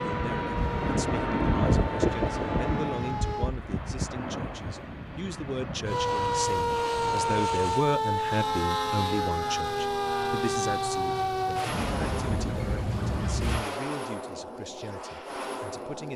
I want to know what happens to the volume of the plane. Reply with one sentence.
The volume of the plane goes down.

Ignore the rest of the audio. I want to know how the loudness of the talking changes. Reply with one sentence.
The loudness of the talking goes up, then down.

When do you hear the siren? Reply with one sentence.
You can hear the siren from 0.0 to 3.5 s and from 5.8 to 13.7 s.